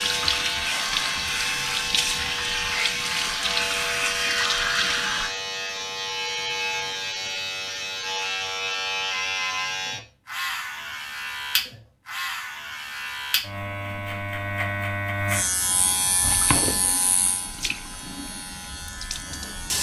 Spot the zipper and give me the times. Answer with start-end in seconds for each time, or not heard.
not heard.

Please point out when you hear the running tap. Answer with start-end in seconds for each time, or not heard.
0.0-5.3, 16.2-19.7.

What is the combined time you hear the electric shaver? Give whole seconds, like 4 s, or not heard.
20 s.